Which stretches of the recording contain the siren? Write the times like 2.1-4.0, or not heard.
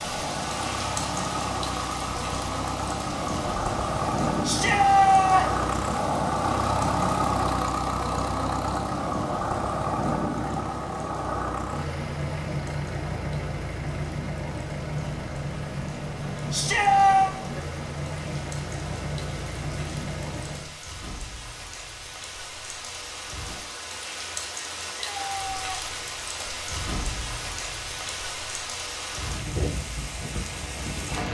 not heard.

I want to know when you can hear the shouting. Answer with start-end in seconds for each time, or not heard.
4.4-5.5, 16.5-17.4, 24.8-25.8.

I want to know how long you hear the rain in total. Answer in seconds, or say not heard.
31 s.